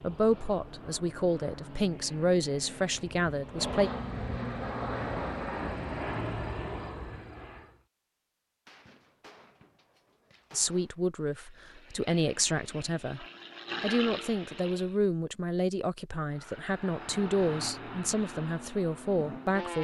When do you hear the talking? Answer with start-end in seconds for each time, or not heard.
0.0-3.9, 10.5-19.7.